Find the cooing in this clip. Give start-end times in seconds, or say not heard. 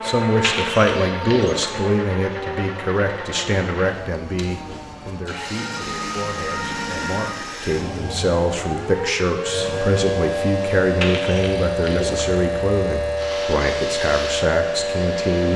0.4-1.7, 11.0-12.2.